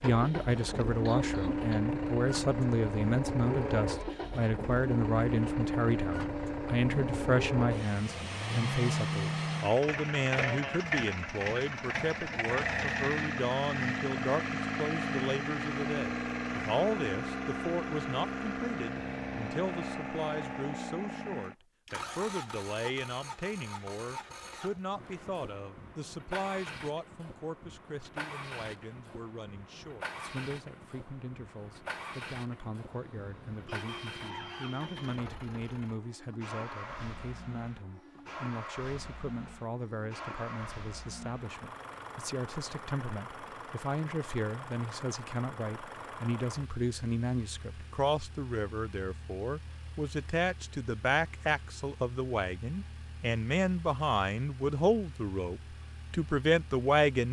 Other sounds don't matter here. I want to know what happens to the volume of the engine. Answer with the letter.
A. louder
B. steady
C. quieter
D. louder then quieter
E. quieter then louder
C.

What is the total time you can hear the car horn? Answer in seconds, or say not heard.
3 s.